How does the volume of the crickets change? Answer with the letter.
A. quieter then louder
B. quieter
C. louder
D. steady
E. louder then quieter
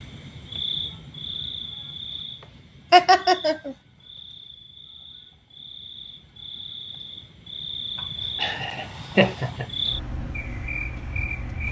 A.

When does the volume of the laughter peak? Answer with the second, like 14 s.
3 s.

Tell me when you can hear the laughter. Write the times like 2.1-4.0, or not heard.
2.9-3.8, 8.4-9.7.